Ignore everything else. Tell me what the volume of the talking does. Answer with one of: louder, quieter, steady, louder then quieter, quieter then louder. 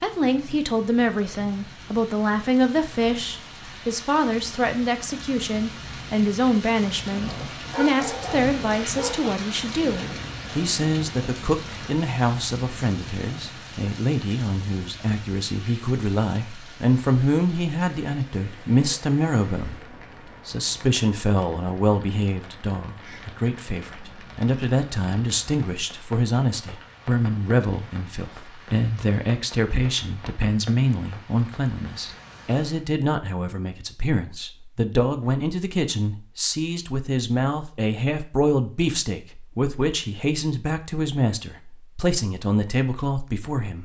steady.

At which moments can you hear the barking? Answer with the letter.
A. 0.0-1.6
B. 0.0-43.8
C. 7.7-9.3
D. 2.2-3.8
C.